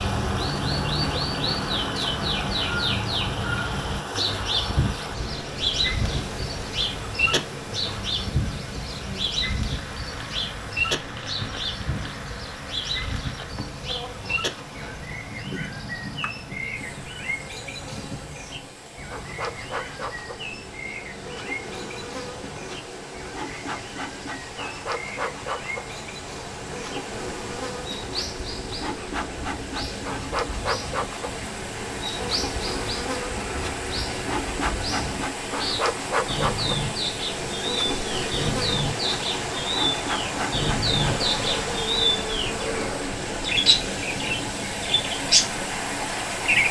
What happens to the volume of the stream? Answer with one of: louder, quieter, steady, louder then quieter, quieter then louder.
quieter then louder.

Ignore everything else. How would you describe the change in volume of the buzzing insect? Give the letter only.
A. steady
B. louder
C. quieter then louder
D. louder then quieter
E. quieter
B.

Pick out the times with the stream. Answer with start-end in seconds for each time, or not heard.
0.0-46.6.